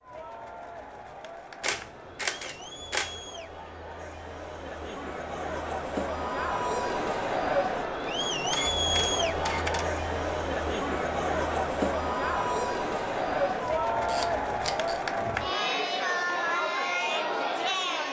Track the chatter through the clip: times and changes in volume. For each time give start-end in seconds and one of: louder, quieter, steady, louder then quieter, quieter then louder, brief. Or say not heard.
0.0-18.0 louder.